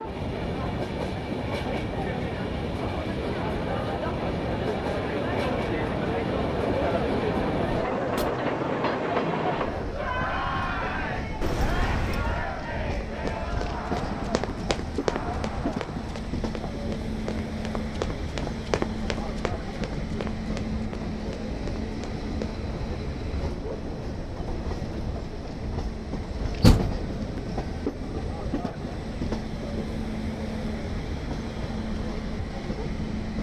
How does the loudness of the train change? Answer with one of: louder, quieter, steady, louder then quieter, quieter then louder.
steady.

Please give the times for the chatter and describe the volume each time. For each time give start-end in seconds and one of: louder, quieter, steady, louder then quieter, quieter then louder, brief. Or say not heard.
0.0-33.2 quieter.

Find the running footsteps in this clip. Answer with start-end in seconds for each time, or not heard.
13.1-22.6.